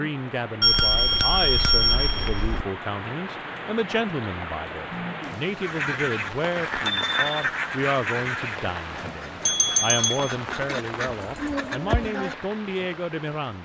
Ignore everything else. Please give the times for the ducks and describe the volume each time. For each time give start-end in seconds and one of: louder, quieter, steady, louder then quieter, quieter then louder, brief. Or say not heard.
5.6-12.3 quieter then louder.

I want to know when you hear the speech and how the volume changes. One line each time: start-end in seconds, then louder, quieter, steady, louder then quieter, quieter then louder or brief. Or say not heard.
0.0-13.6 steady.